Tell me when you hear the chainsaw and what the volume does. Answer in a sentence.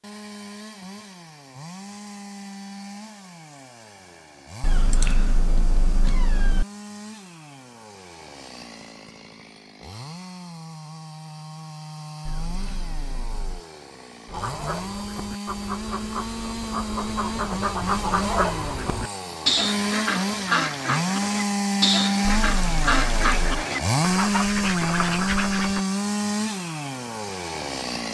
The chainsaw can be heard from 0.0 to 28.0 s, getting louder.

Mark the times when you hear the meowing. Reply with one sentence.
The meowing can be heard from 4.6 to 6.7 s, from 12.2 to 13.6 s and from 22.2 to 23.4 s.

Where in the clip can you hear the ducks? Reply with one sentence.
You can hear the ducks from 14.2 to 25.9 s.